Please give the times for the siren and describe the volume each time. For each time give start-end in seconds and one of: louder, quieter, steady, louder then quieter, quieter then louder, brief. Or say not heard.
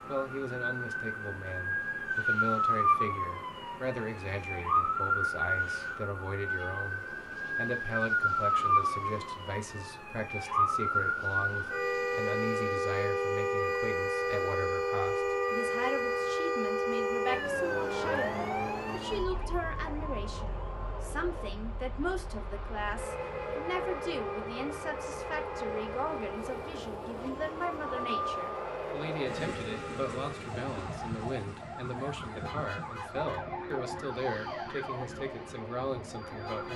0.0-36.7 quieter.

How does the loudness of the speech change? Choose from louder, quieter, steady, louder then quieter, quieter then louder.
steady.